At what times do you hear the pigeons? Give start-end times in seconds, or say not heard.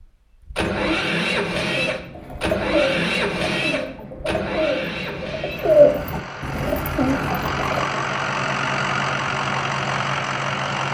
1.7-7.9.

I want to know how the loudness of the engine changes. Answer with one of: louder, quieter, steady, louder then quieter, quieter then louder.
quieter then louder.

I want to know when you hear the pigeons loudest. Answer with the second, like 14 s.
6 s.